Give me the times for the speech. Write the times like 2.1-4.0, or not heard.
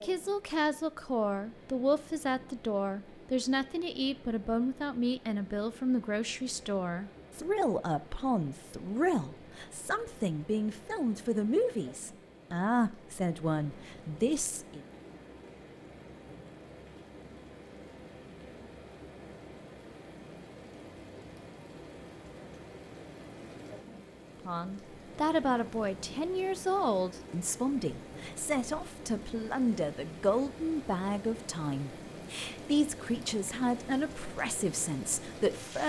0.0-14.8, 24.4-35.8.